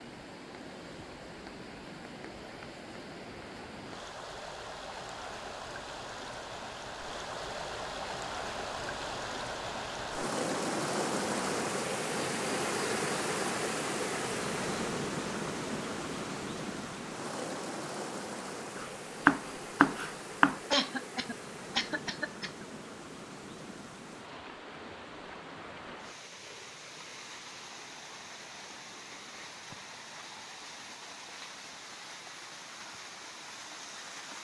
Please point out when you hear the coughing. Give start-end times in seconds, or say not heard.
20.7-22.6.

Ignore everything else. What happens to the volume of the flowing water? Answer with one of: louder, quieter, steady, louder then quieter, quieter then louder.
louder then quieter.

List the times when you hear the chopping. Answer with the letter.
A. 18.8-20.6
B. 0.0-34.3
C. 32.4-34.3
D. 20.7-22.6
A.